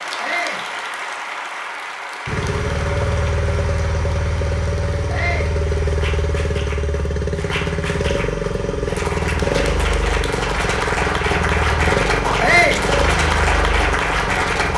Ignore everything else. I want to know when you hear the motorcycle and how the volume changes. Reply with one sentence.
The motorcycle can be heard from 2.2 to 14.7 s, at a steady volume.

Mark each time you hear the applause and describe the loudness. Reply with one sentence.
You can hear the applause from 0.0 to 14.7 s, getting quieter then louder.